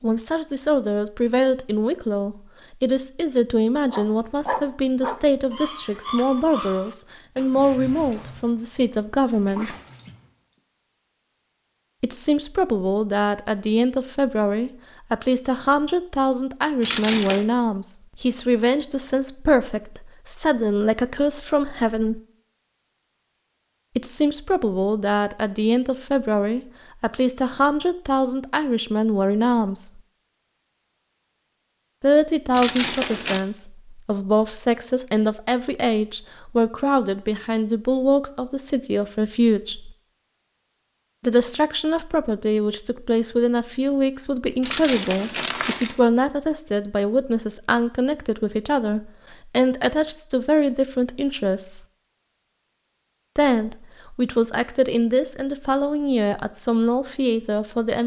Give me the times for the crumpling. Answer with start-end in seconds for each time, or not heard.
16.8-17.4, 32.5-33.4, 44.6-46.0.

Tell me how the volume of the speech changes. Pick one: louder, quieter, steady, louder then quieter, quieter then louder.
steady.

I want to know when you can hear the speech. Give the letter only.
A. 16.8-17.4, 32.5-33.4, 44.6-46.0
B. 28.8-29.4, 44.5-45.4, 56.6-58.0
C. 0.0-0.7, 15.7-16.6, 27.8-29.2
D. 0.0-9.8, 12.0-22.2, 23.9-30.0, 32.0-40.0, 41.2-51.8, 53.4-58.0
D.